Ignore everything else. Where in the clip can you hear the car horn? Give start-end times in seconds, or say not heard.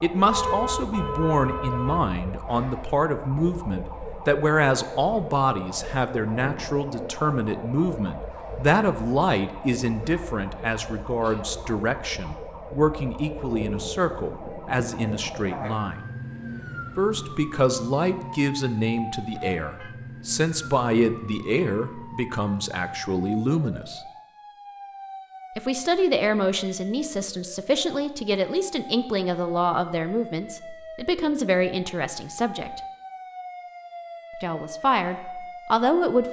0.3-2.1, 19.1-19.9.